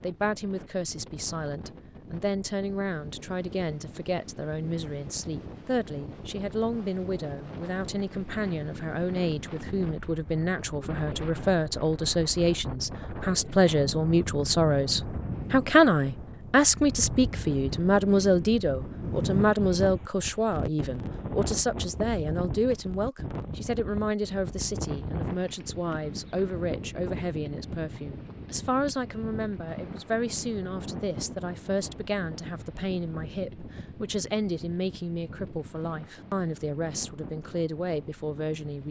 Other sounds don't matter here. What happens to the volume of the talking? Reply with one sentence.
The loudness of the talking goes up, then down.